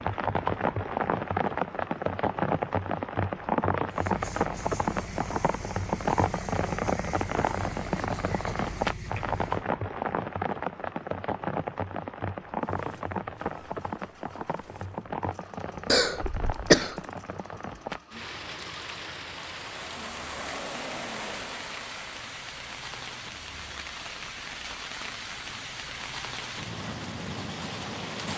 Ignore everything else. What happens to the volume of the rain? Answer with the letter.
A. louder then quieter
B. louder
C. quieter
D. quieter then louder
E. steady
C.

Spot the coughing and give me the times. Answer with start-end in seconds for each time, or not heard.
15.8-16.9.